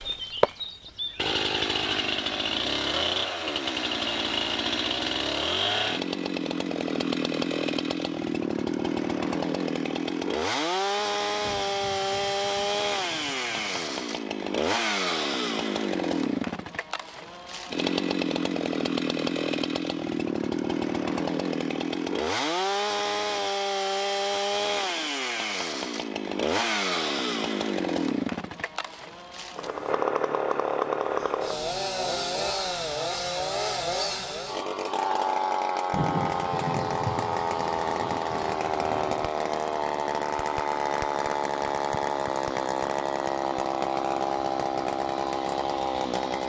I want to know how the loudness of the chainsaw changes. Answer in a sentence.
The volume of the chainsaw stays about the same.